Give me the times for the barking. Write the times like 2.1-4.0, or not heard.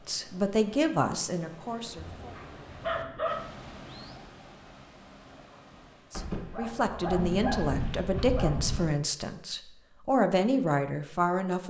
2.1-4.2, 6.1-8.9.